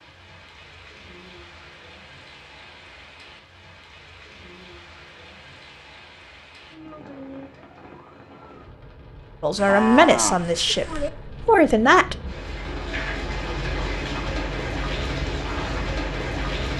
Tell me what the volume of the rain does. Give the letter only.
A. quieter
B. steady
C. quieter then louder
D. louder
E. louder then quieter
D.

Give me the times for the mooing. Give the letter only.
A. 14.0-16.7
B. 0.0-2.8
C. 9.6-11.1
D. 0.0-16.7
C.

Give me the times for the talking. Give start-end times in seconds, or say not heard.
9.4-12.2.